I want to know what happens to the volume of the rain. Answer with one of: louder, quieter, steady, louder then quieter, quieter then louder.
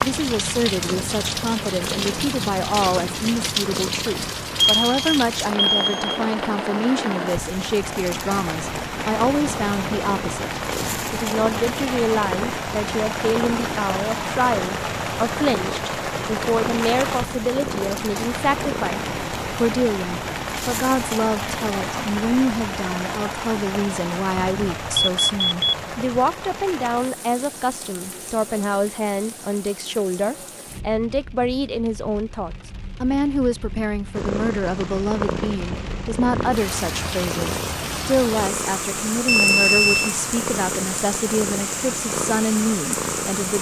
quieter then louder.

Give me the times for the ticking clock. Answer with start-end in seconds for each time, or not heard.
not heard.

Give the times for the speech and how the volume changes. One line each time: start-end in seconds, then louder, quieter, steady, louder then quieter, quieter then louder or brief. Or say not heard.
0.0-43.5 steady.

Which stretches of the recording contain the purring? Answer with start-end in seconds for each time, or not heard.
0.0-4.3, 8.9-19.4, 34.1-43.5.